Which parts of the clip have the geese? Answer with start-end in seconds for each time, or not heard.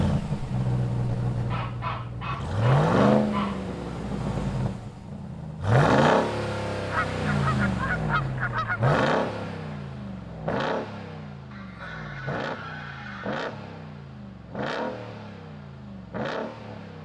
1.4-3.7, 6.9-9.0, 11.5-13.5.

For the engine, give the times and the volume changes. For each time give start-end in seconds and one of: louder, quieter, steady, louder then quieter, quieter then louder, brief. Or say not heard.
0.0-17.0 quieter.